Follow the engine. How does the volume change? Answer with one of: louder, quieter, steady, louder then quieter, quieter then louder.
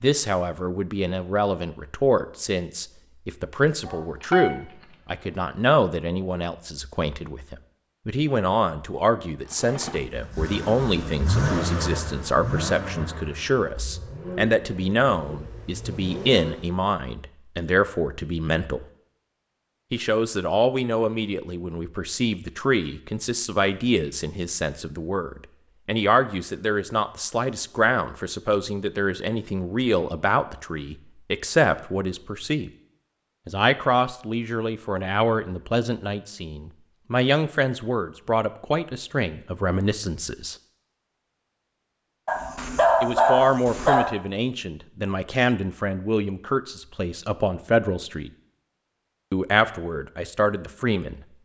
louder then quieter.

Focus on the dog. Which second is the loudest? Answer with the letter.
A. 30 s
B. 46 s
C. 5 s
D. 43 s
D.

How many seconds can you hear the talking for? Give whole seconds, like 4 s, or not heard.
46 s.